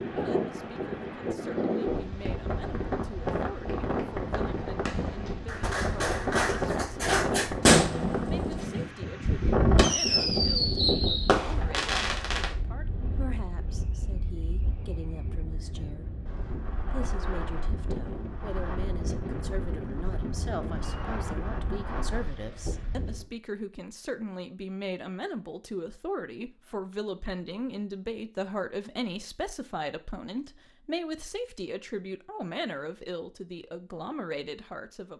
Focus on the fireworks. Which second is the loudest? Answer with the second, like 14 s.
8 s.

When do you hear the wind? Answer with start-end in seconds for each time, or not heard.
0.0-23.2.